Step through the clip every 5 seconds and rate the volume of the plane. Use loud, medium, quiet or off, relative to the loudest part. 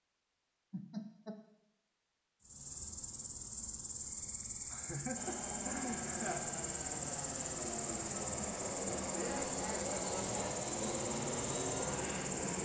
off, loud, loud.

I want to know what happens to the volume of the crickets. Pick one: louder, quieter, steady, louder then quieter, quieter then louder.
steady.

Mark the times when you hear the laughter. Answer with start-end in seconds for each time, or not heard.
0.7-1.4, 4.7-6.7, 8.9-10.7.